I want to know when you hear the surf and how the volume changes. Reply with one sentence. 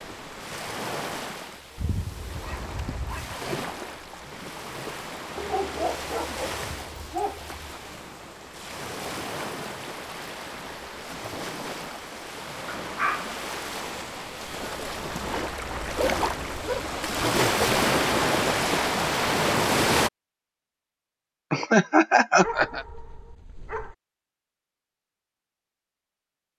You can hear the surf from 0.0 to 20.1 s, getting louder.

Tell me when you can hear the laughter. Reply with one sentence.
The laughter can be heard from 21.5 to 22.9 s.